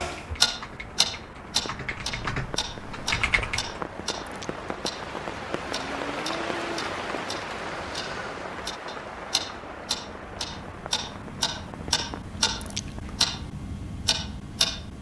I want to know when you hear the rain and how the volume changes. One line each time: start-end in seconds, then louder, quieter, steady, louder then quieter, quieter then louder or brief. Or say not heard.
0.1-12.8 louder then quieter.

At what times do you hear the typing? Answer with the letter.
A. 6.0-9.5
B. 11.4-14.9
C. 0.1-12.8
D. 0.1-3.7
D.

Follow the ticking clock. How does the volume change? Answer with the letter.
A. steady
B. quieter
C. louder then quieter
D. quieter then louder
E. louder
D.